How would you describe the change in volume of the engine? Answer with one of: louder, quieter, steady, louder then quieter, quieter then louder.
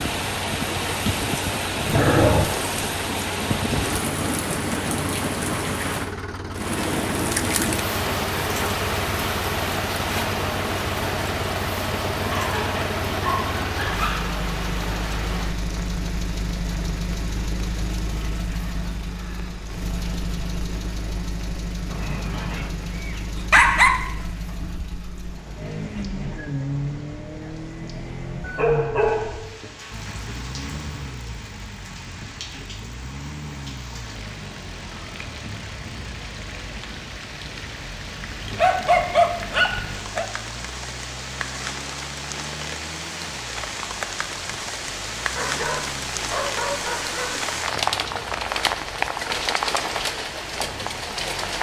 quieter.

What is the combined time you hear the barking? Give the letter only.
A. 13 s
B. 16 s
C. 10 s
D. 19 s
C.